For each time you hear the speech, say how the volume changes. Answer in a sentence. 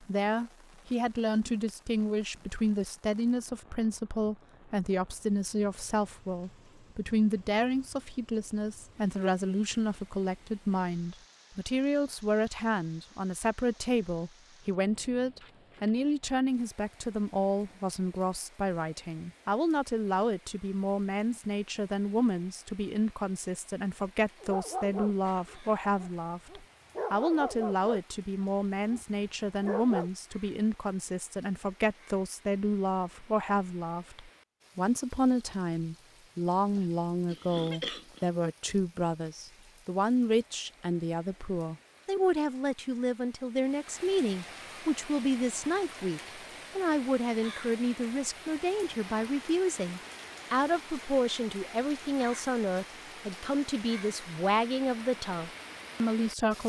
You can hear the speech from 0.0 to 56.6 s, at a steady volume.